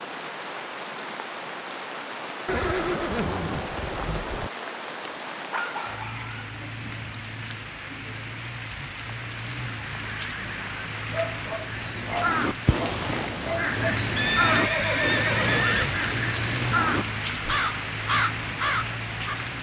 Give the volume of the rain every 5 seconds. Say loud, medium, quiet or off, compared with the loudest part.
medium, medium, loud, loud.